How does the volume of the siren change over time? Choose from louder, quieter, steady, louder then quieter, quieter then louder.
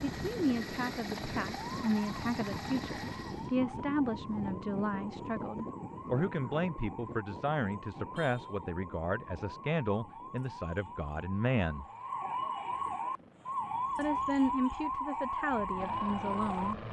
louder.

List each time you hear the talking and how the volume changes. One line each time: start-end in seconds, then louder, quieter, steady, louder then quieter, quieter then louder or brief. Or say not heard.
0.0-11.8 steady
13.9-16.8 brief.